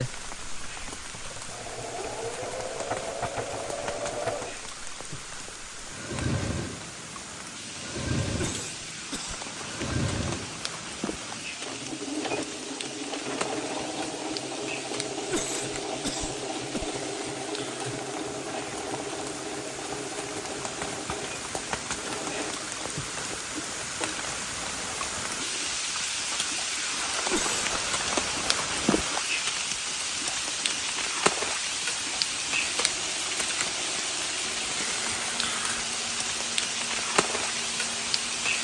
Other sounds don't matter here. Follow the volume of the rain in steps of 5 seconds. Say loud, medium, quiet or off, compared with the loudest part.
medium, medium, medium, medium, medium, loud, loud, loud.